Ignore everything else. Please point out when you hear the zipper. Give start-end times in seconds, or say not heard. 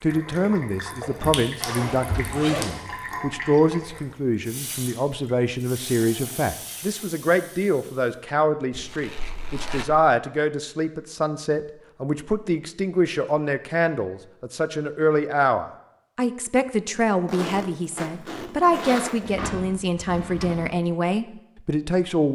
1.6-2.8, 8.7-10.1, 17.2-19.3.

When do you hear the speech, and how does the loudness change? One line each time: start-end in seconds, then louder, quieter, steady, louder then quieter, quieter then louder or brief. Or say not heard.
0.0-22.2 steady.